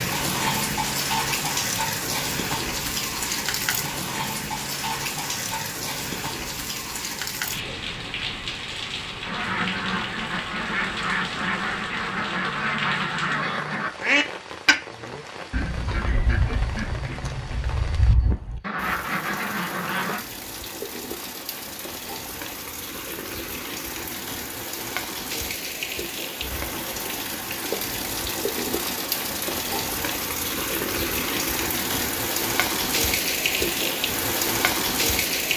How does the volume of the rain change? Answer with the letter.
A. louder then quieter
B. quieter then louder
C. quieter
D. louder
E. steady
B.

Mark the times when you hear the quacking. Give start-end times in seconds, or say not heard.
9.2-20.2.